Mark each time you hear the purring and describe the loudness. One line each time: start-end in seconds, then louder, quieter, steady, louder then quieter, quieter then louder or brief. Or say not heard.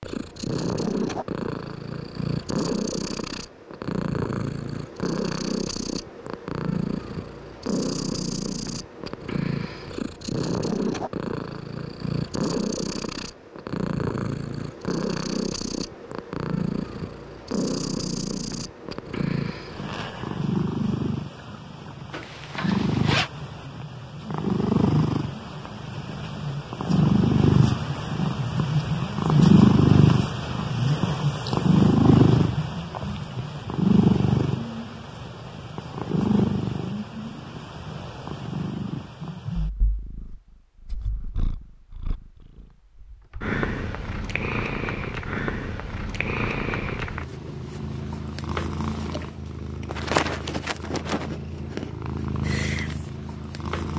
0.0-53.9 louder then quieter.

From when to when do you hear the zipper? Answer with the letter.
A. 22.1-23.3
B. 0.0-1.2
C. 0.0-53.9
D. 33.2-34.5
A.